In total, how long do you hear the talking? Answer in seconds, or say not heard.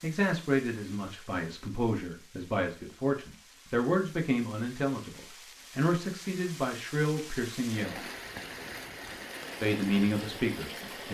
9 s.